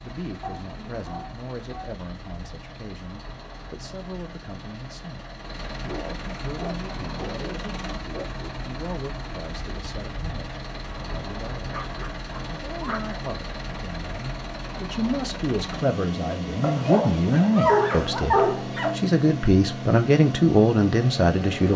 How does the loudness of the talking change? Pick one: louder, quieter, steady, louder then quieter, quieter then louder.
louder.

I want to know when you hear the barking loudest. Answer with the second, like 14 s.
18 s.